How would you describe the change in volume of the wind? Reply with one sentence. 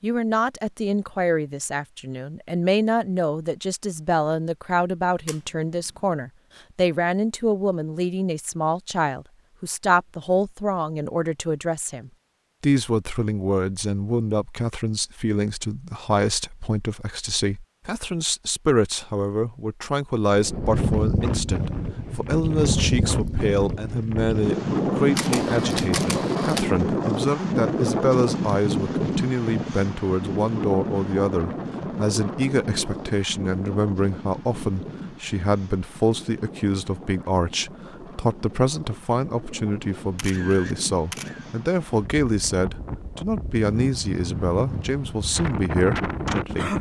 The volume of the wind goes down, then up.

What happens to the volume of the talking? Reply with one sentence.
The volume of the talking stays about the same.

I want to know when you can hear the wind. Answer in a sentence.
The wind can be heard from 20.3 to 46.7 s.